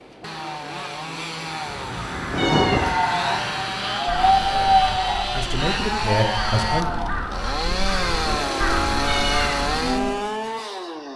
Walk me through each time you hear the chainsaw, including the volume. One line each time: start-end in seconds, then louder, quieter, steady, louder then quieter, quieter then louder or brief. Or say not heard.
0.0-11.1 louder.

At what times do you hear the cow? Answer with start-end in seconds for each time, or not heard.
2.5-10.1.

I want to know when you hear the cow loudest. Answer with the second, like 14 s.
5 s.